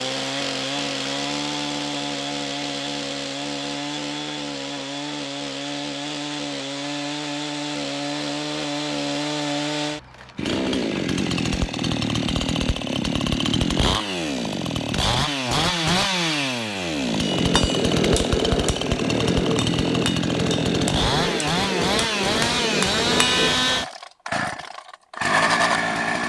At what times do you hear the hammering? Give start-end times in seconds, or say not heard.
17.2-23.6.